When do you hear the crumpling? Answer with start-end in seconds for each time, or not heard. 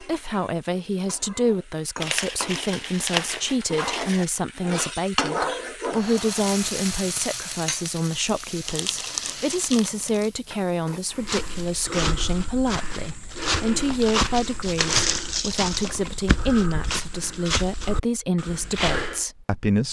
2.0-4.2, 8.7-10.3, 13.8-16.0.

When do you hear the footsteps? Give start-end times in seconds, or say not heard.
11.1-19.2.